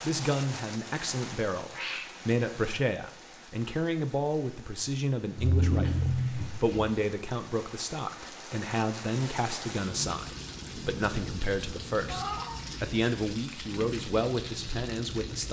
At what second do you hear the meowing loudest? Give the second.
6 s.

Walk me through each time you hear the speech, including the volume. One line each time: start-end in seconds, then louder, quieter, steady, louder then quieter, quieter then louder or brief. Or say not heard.
0.0-15.4 steady.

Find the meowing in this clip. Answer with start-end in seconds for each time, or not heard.
1.7-2.1, 5.3-6.8, 12.1-12.6.